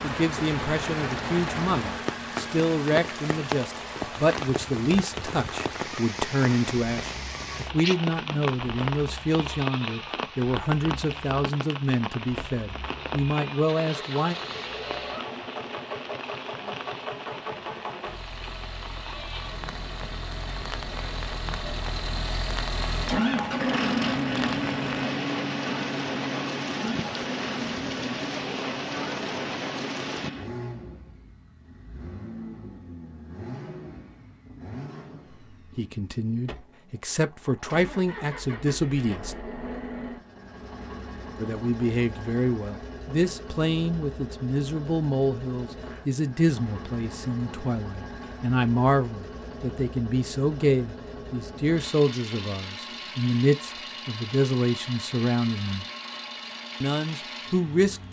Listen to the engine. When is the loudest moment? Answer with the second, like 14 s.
24 s.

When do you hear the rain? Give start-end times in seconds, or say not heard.
0.0-30.3.